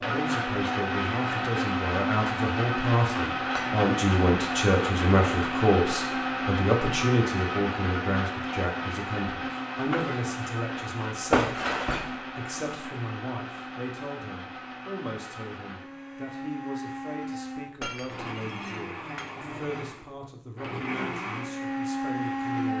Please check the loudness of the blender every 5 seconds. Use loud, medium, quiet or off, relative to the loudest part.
loud, loud, medium, medium, loud.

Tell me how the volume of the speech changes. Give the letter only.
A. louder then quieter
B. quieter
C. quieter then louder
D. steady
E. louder
B.